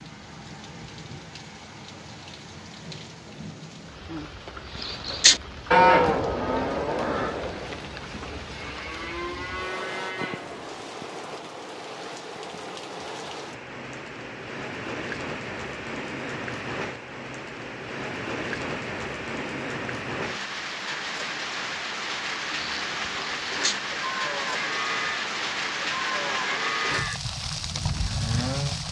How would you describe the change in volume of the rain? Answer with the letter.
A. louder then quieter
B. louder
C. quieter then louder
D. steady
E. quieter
B.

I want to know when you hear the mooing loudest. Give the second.
6 s.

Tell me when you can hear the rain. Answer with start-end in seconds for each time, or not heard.
0.0-28.8.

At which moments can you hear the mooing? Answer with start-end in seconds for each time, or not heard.
4.7-10.9, 22.4-28.8.